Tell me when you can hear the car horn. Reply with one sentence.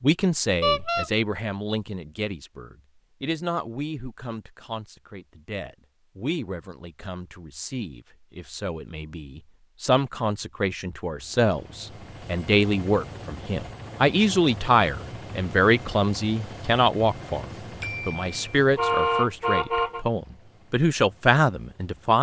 The car horn can be heard from 0.6 to 1.1 s and from 17.8 to 20.1 s.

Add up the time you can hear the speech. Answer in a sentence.
The speech can be heard for 22 seconds in total.